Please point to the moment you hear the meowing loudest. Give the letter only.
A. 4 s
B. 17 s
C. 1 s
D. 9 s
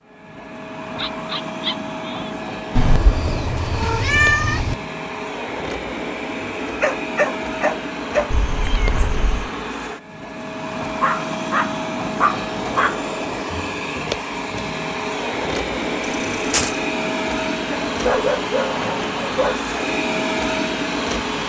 A.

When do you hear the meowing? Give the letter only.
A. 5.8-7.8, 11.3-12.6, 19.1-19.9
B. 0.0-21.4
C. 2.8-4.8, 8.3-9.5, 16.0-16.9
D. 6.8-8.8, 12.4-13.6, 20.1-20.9
C.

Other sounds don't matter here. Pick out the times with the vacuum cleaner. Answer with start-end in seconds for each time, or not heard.
0.0-21.4.